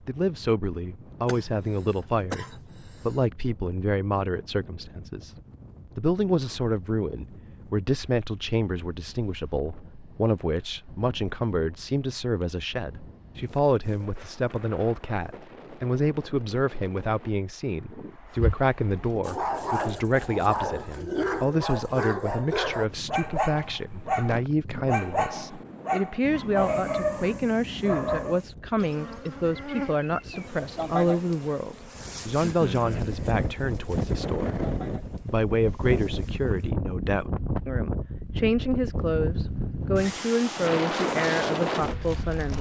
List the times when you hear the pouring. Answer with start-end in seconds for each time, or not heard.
not heard.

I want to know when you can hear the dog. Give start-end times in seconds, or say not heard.
18.2-28.4.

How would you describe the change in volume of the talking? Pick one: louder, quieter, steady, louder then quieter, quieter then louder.
steady.